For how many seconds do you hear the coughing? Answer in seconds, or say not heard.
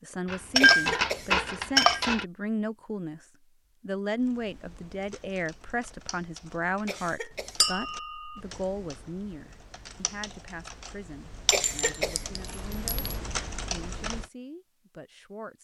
2 s.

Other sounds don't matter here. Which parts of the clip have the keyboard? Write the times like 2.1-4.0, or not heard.
4.2-14.3.